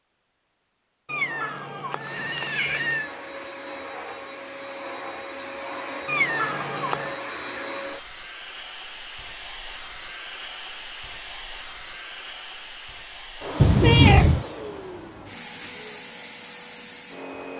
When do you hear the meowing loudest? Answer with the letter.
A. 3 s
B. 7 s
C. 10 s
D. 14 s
D.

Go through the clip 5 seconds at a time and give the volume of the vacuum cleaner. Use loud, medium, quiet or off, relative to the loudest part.
medium, loud, loud, medium.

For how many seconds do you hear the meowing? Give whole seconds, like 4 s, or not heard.
4 s.